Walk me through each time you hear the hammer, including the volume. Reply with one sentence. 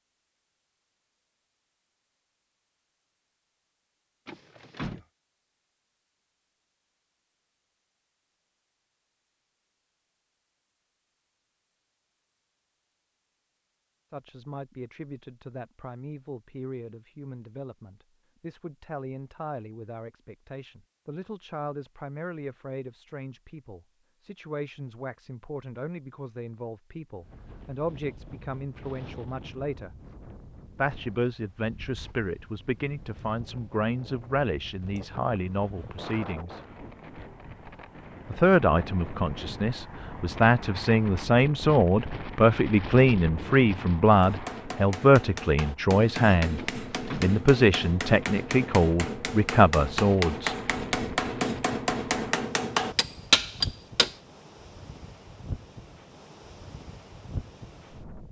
You can hear the hammer from 44.2 to 54.1 s, getting louder.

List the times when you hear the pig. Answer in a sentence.
The pig can't be heard in this clip.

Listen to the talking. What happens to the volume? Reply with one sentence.
The volume of the talking goes up.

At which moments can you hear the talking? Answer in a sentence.
The talking can be heard from 14.1 to 29.9 s, from 30.8 to 36.6 s, from 38.3 to 46.6 s and from 47.2 to 50.5 s.